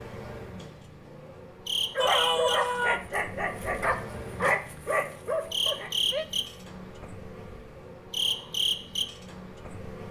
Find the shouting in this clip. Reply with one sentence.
You can hear the shouting from 1.9 to 3.0 s and from 6.0 to 6.5 s.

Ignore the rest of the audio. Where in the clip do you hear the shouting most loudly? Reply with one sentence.
The volume of the shouting peaks at 2 seconds.